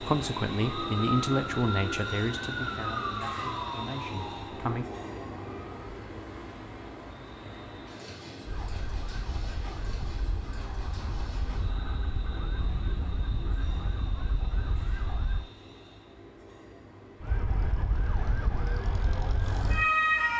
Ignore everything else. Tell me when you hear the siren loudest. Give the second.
20 s.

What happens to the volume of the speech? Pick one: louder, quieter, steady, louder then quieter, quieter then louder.
quieter.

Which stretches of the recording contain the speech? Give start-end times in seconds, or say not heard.
0.0-4.8.